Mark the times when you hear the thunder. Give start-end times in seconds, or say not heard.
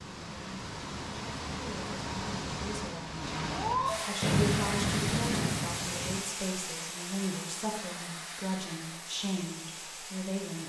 4.2-6.2.